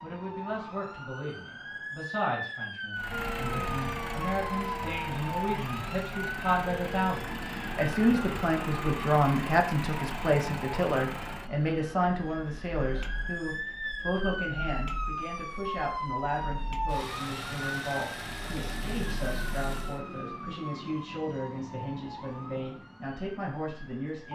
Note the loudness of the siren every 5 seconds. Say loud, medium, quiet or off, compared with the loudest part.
loud, loud, loud, loud, medium.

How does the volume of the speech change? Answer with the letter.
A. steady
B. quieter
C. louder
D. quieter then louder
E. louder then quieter
E.